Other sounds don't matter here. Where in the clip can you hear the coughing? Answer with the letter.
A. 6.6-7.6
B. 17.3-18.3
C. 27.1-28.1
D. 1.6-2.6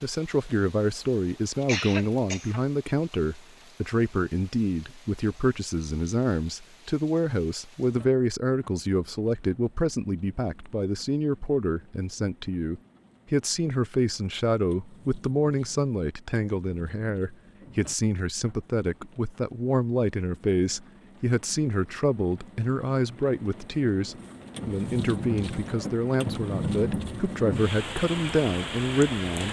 D.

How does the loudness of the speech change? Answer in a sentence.
The volume of the speech stays about the same.